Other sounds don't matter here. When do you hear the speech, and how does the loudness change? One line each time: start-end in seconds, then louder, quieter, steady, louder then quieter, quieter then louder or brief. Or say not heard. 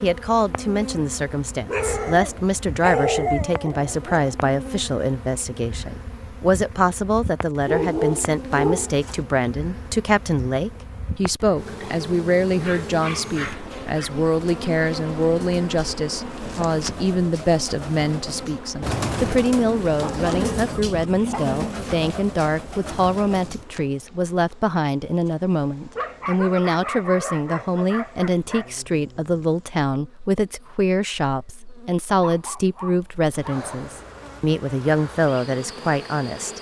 0.0-36.5 steady.